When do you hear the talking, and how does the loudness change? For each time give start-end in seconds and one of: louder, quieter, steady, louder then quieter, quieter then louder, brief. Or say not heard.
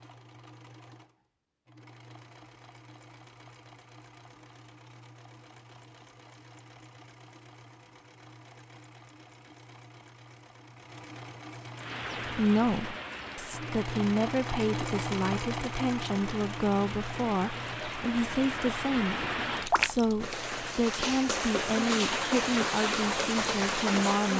12.2-24.3 steady.